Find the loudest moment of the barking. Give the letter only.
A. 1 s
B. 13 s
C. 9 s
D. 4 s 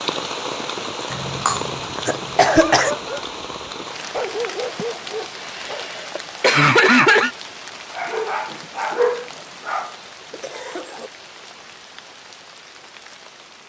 C.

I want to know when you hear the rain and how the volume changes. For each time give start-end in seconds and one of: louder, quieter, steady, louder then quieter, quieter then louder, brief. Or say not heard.
0.0-13.6 quieter.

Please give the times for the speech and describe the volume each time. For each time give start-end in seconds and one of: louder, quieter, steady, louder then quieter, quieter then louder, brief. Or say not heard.
not heard.